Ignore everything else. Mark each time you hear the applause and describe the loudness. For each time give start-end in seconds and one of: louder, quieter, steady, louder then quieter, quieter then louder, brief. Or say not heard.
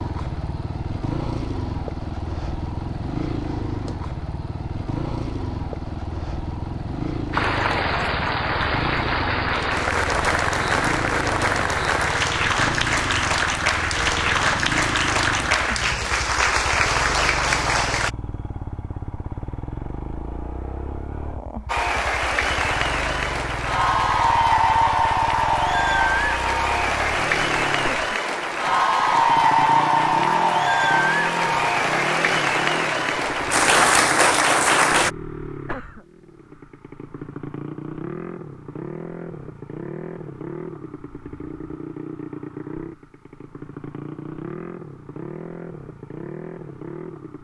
7.3-18.1 steady
21.6-35.1 steady.